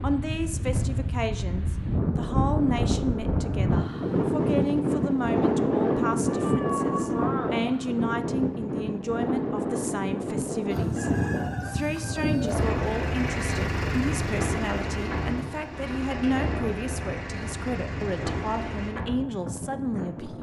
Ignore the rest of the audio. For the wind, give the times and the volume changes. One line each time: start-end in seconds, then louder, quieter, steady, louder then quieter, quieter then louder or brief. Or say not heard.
0.0-20.3 quieter.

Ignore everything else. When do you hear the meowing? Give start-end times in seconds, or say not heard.
6.2-7.6.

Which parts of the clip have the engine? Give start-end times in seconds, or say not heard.
12.6-18.9.